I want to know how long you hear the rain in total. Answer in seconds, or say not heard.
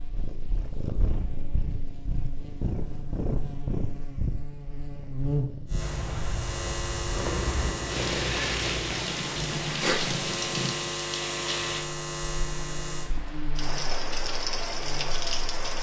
10 s.